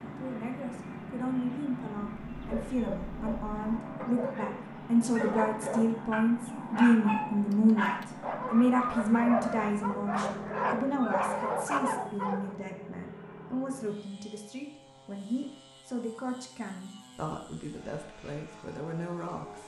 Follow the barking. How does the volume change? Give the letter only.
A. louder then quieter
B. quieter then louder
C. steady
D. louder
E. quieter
D.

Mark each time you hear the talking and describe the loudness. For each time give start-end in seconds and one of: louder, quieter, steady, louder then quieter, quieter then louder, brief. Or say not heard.
0.0-19.6 louder then quieter.